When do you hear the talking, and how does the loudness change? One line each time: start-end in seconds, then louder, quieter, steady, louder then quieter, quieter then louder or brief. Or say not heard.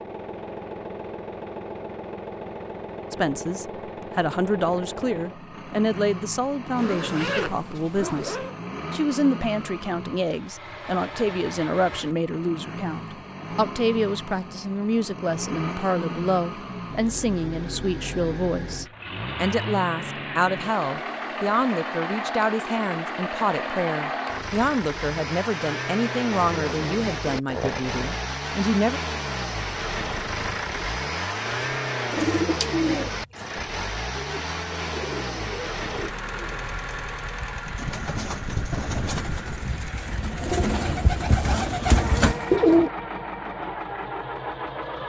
3.1-29.0 steady.